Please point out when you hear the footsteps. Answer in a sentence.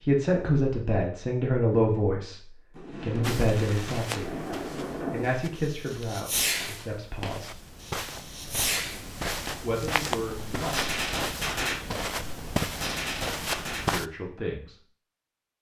The footsteps can be heard from 3.2 to 14.1 s.